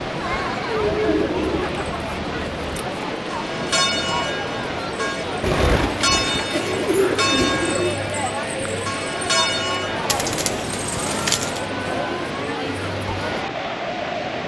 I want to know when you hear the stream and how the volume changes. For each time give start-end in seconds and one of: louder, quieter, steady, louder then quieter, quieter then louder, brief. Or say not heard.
0.0-14.4 steady.